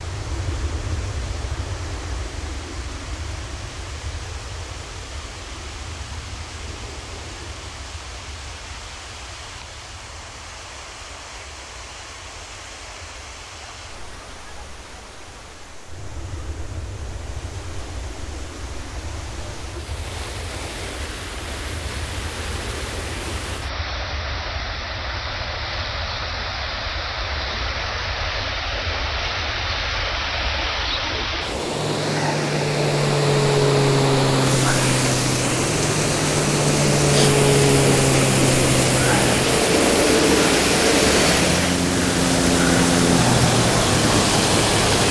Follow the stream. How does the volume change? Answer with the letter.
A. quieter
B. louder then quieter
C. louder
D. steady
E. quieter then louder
C.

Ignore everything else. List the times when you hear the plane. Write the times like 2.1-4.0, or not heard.
0.0-45.0.